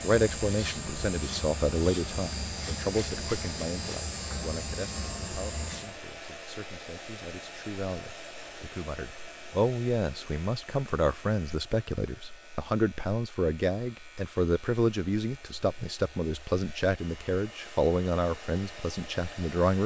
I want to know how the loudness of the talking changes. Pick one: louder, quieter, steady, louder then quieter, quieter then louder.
quieter then louder.